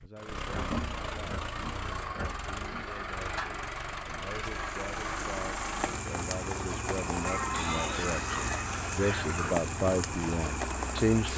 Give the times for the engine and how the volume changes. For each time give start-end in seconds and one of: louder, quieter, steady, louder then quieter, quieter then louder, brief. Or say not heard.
0.0-11.3 steady.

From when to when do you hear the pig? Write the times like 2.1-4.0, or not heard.
0.5-2.9, 7.5-9.6.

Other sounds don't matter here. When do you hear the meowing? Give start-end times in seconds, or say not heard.
7.0-8.0.